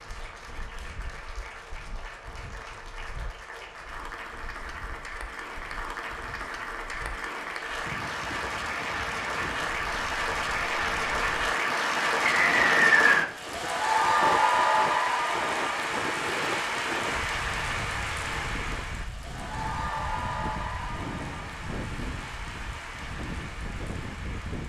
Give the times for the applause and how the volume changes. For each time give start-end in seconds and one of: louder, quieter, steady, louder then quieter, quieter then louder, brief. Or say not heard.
0.0-24.6 louder then quieter.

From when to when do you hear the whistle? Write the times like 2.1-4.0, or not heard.
12.3-13.2.